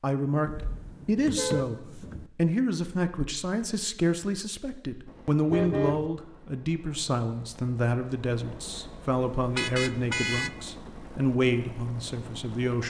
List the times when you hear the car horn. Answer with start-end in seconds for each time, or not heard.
0.5-2.3, 5.5-6.1, 9.6-10.6.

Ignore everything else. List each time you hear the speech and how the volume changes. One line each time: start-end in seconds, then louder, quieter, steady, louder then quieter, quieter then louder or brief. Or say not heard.
0.0-12.8 steady.